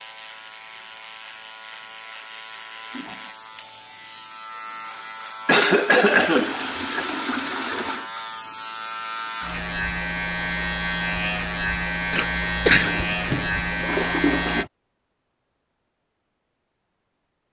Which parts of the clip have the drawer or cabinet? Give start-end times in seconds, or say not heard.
not heard.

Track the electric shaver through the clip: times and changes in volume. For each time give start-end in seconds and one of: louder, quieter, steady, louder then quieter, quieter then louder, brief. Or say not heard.
0.0-14.7 louder.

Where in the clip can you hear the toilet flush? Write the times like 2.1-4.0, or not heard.
2.8-3.4, 6.0-8.1, 12.8-14.7.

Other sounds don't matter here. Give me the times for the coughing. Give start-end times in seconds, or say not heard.
5.5-7.0, 12.1-12.9.